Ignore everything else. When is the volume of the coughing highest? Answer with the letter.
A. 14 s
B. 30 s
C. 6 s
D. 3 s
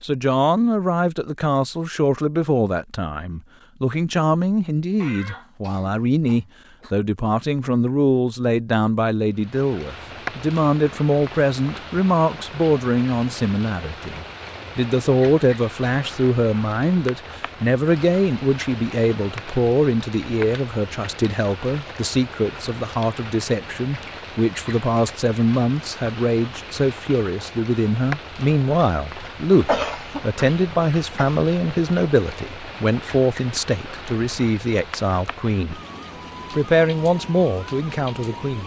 B.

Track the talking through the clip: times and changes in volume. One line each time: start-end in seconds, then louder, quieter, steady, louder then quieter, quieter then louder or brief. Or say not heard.
0.0-35.8 steady
36.5-38.6 brief.